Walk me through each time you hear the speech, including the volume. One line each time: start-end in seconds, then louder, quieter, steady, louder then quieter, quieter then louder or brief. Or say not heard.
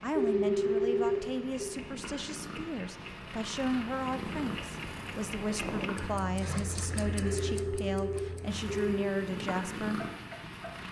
0.0-10.0 steady.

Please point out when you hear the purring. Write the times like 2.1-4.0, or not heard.
0.0-6.2, 8.4-10.8.